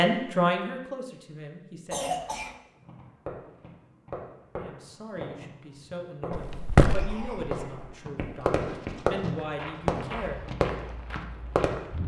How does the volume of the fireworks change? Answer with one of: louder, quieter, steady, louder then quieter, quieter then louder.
louder.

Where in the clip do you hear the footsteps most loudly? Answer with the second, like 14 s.
7 s.